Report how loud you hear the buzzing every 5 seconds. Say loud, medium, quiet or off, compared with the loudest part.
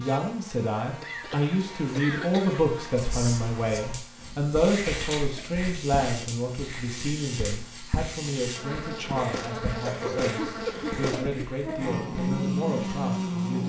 quiet, medium, loud.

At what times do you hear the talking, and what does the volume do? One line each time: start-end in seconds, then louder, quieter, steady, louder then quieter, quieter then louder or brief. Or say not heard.
0.0-13.6 quieter.